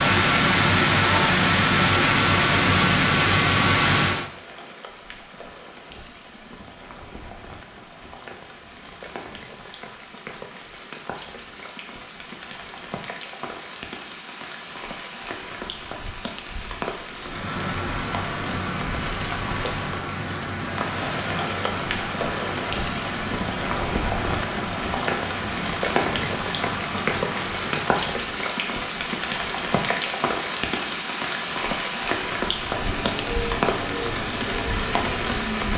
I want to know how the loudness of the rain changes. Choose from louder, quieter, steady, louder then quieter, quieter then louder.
louder.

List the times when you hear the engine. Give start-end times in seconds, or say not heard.
0.0-4.3, 17.2-28.2, 32.6-35.7.